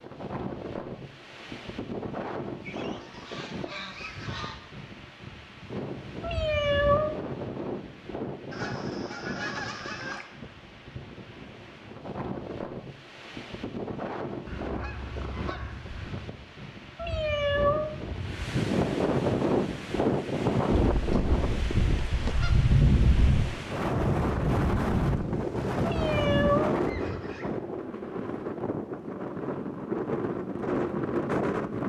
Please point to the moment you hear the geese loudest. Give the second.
23 s.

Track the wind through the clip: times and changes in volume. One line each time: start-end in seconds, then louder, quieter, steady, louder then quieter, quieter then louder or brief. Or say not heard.
0.0-31.8 louder.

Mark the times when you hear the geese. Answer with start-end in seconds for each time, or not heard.
2.6-4.6, 8.5-10.2, 14.4-16.2, 20.8-23.5, 25.6-27.5.